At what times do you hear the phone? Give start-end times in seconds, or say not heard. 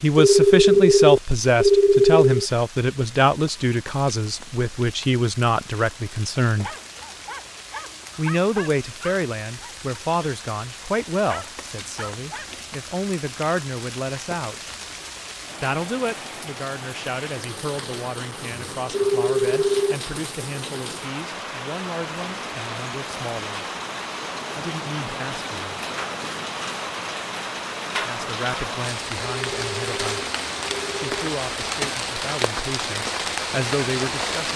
0.1-2.5, 18.9-19.9, 29.2-31.1.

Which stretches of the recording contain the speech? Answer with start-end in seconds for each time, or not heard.
0.0-6.7, 8.2-14.7, 15.6-23.6, 24.6-25.8, 28.0-30.2, 30.9-34.5.